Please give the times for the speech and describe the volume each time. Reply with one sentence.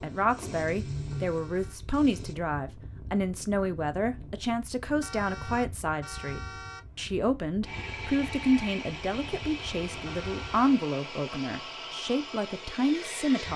The speech can be heard from 0.0 to 13.5 s, at a steady volume.